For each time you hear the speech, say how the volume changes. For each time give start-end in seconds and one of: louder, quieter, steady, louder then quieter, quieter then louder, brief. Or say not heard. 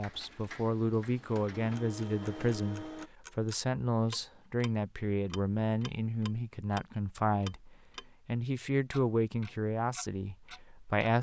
0.0-11.1 steady.